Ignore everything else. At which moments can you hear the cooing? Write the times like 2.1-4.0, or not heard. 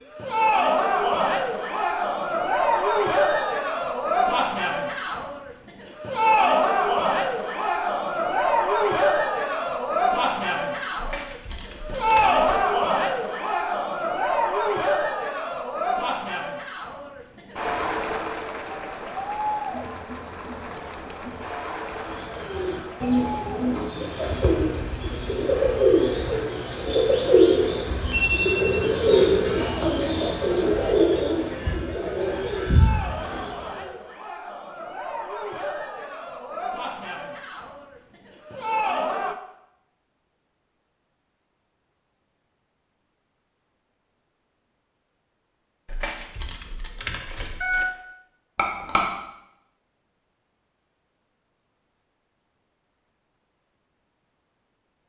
21.9-33.9.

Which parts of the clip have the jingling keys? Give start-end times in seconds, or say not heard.
10.9-12.7, 45.9-47.9.